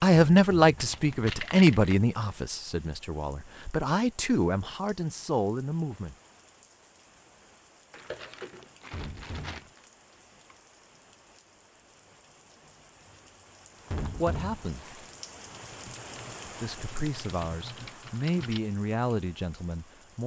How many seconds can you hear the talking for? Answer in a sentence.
You can hear the talking for 11 seconds altogether.